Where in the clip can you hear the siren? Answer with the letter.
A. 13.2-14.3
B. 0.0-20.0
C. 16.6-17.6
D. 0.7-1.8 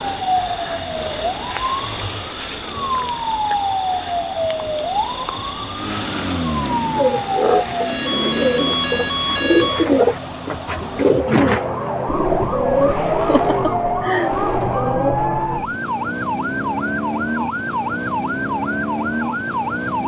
B.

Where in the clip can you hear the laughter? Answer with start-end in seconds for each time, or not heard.
13.2-14.3.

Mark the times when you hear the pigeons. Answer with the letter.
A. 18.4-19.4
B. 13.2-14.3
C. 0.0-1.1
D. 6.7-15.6
D.